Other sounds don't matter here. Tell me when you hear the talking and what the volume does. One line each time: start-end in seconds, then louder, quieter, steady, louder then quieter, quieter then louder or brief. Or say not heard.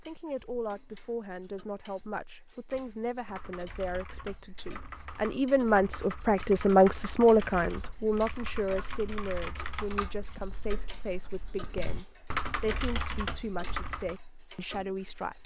0.1-15.4 louder then quieter.